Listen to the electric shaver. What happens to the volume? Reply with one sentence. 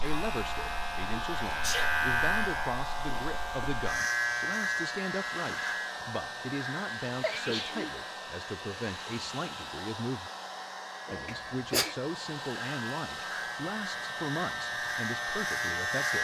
The volume of the electric shaver goes down, then up.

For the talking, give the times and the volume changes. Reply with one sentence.
The talking can be heard from 0.0 to 10.3 s, at a steady volume; and from 11.1 to 16.1 s, at a steady volume.